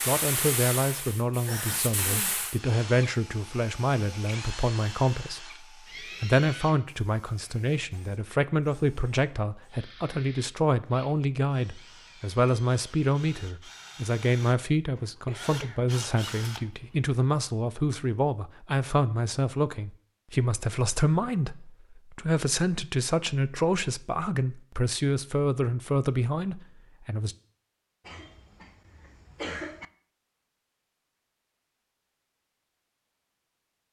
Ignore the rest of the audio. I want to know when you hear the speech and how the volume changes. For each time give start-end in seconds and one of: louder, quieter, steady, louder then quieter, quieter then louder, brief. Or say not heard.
0.1-27.4 steady.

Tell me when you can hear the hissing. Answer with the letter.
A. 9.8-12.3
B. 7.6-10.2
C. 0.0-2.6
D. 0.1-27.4
C.